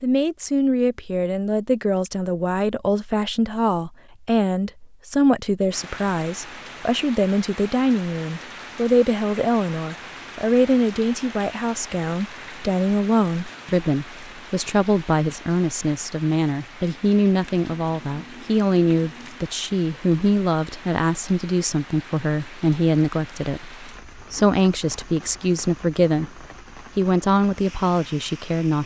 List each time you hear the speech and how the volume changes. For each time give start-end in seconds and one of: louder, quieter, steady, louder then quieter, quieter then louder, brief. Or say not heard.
0.0-28.8 steady.